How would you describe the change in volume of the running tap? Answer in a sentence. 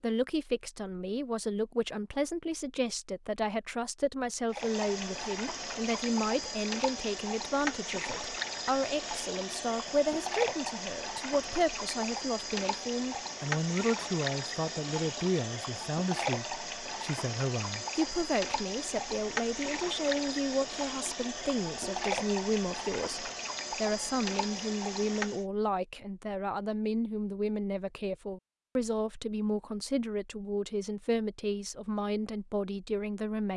The loudness of the running tap stays about the same.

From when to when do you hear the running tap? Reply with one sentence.
The running tap can be heard from 4.5 to 25.4 s.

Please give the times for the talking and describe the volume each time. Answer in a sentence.
The talking can be heard from 0.0 to 33.5 s, at a steady volume.